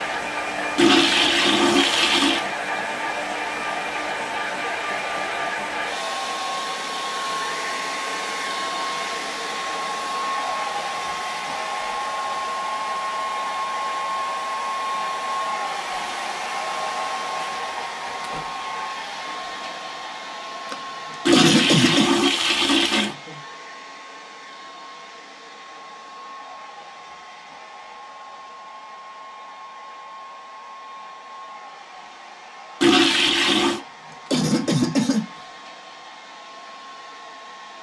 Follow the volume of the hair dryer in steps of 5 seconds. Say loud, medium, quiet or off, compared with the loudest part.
loud, loud, loud, loud, medium, quiet, quiet, quiet.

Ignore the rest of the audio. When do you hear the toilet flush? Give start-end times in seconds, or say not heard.
0.8-2.5, 21.2-23.1, 32.8-33.8.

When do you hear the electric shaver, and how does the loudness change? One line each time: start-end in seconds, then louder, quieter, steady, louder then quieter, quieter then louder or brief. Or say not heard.
not heard.